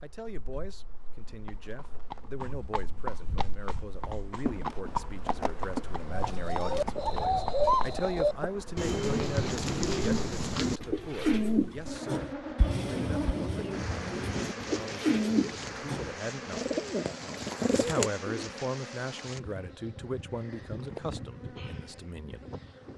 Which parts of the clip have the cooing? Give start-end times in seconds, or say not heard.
6.1-18.4.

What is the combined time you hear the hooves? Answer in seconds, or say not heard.
7 s.